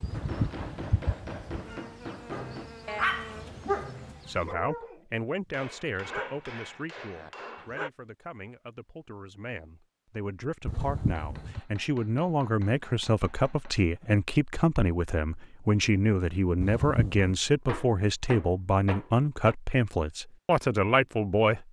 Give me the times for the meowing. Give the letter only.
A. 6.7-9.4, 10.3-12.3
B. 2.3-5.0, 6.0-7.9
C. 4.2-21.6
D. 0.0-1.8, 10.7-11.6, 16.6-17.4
D.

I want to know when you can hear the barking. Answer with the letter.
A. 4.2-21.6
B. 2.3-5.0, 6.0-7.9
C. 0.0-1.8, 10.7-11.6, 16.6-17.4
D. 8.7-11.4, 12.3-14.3
B.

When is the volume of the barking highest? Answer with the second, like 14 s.
3 s.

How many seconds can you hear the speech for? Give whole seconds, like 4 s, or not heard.
17 s.